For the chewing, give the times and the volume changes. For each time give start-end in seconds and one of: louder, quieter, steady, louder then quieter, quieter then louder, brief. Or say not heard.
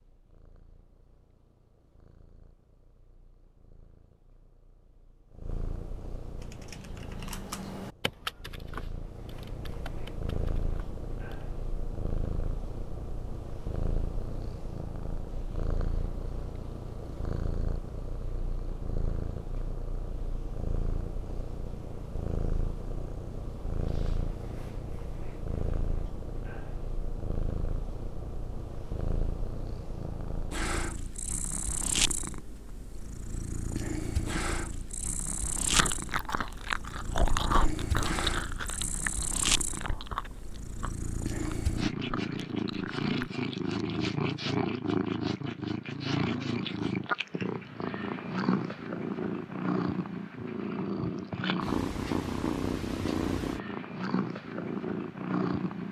35.6-43.3 quieter.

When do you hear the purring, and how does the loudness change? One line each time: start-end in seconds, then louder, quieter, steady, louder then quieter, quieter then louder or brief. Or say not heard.
0.0-55.8 louder.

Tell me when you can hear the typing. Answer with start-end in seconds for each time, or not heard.
6.3-11.4.